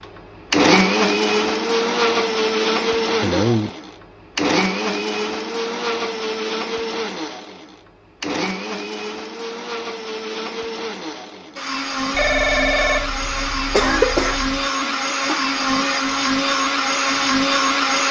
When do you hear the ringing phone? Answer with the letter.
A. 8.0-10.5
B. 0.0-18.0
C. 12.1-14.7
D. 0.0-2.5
C.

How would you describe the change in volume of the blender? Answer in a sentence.
The volume of the blender goes down, then up.